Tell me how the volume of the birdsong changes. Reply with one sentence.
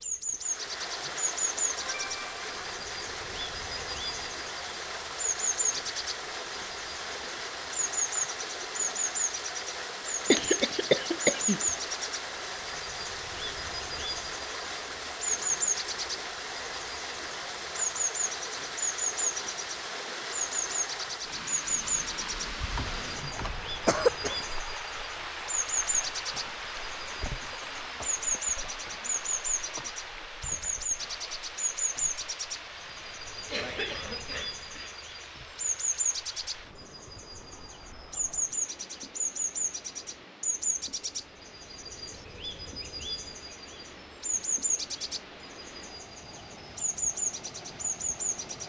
The loudness of the birdsong stays about the same.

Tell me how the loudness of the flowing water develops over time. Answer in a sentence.
The volume of the flowing water goes down.